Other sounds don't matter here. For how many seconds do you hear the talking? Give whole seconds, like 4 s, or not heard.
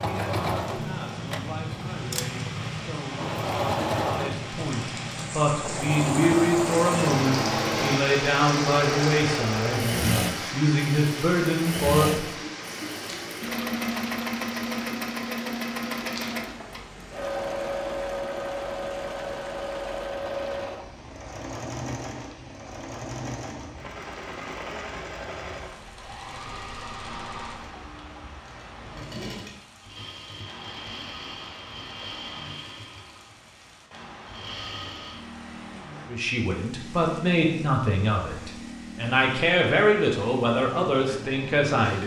18 s.